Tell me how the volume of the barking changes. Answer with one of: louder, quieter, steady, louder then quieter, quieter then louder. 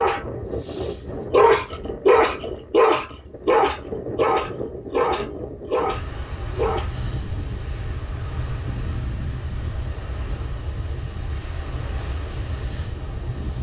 quieter.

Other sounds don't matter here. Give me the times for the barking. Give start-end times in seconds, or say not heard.
0.0-6.9.